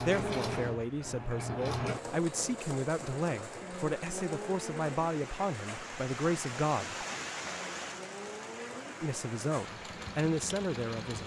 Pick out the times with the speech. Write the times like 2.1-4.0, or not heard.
0.0-7.0, 9.0-11.2.